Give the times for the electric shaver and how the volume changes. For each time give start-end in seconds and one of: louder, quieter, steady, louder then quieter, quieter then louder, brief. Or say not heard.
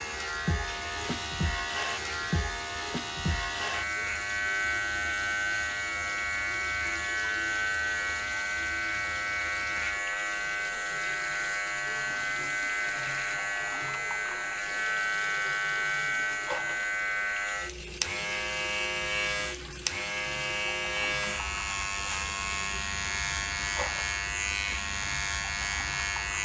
0.0-26.3 steady.